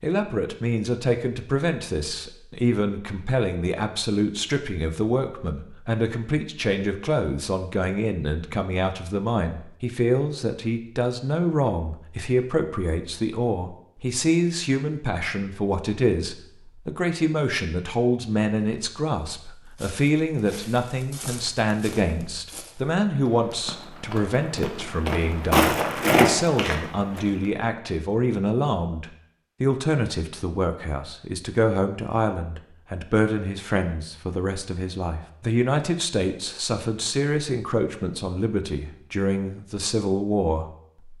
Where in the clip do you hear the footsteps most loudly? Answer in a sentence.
The volume of the footsteps peaks at 26 seconds.